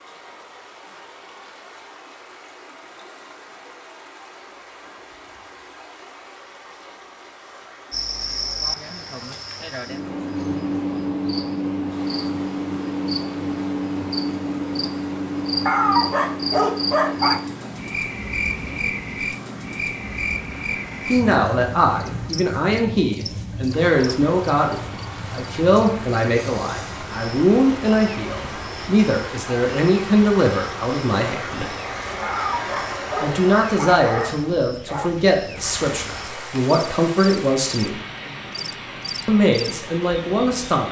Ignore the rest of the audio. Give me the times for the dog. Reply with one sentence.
The dog can be heard from 15.7 to 17.4 s and from 32.2 to 35.1 s.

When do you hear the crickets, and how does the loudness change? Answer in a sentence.
The crickets can be heard from 7.9 to 40.8 s, getting quieter.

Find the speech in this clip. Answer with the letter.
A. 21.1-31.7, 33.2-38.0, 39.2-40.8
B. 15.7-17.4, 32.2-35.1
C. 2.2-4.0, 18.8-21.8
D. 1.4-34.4
A.